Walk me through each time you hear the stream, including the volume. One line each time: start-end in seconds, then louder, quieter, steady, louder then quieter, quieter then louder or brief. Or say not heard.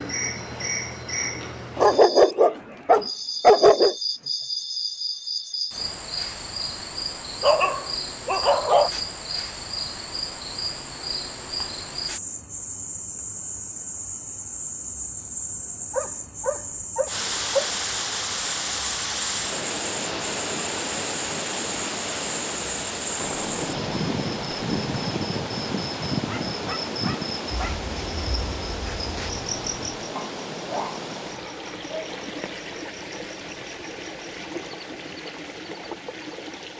17.1-36.7 quieter.